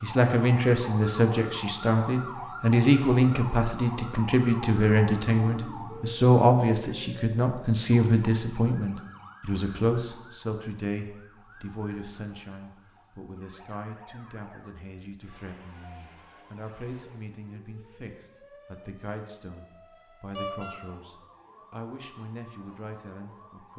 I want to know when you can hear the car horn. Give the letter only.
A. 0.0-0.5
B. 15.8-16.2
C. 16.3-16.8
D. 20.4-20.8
D.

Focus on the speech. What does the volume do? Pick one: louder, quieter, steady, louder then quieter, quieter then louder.
quieter.